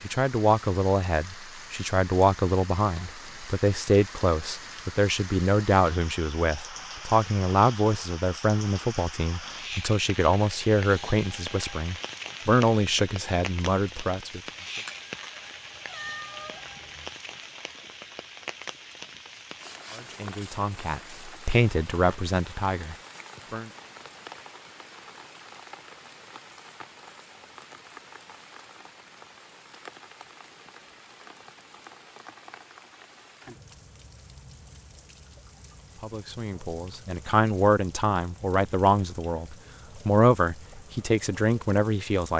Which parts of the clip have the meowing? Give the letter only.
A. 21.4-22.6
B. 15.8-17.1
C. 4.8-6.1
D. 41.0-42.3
B.